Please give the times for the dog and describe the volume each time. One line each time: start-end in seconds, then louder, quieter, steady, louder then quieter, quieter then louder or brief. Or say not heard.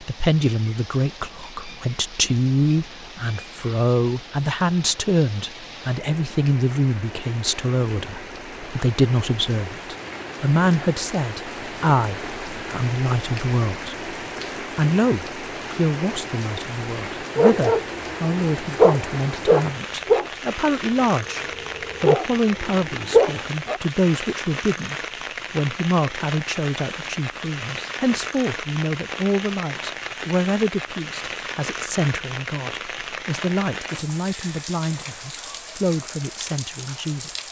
17.4-23.8 quieter then louder.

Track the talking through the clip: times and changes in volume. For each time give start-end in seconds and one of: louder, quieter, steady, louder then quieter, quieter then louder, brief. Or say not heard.
0.0-14.1 steady
14.8-37.3 steady.